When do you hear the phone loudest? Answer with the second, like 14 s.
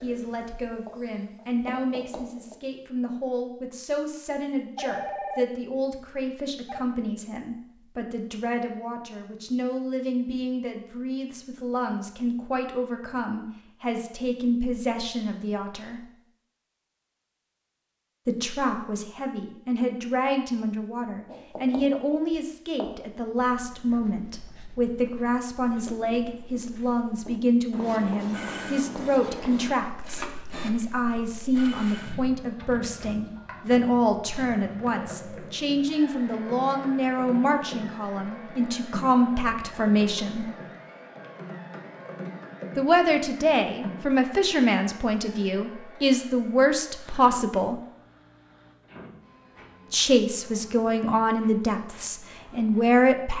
5 s.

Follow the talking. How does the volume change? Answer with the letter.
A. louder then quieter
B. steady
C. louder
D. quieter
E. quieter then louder
C.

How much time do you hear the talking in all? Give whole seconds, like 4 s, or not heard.
47 s.